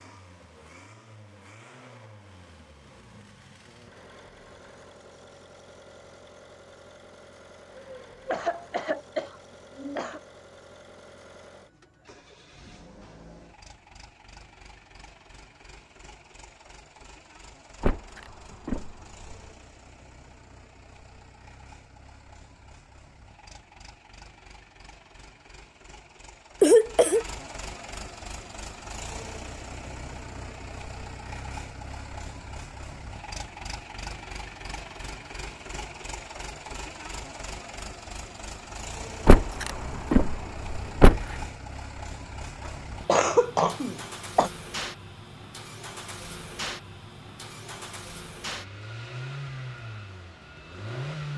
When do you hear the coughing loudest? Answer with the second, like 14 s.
27 s.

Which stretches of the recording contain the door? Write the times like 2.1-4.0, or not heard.
17.8-19.4, 39.2-41.2.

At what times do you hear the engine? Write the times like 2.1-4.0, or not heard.
0.0-51.3.